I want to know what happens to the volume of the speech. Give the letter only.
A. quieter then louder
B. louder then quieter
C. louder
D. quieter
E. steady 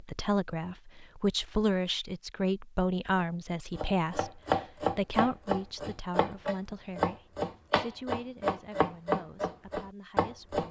D.